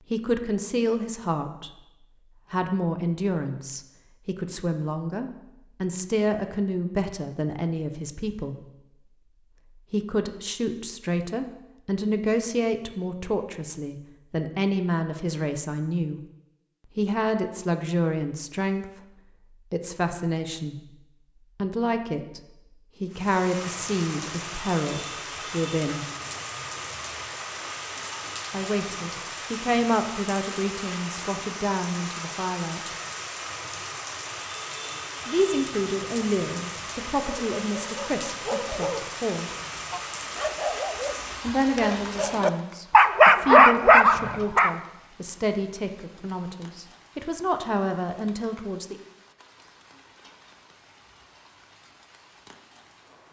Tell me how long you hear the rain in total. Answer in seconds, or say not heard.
30 s.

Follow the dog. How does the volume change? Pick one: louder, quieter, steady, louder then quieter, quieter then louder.
quieter then louder.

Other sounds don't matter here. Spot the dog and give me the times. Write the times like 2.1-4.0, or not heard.
37.2-44.7.